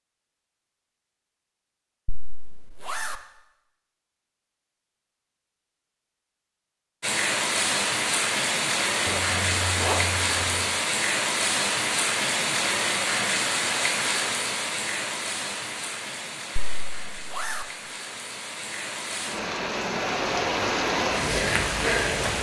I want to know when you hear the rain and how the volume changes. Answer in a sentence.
The rain can be heard from 7.0 to 22.3 s, getting quieter then louder.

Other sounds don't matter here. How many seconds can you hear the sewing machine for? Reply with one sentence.
You can't hear the sewing machine here.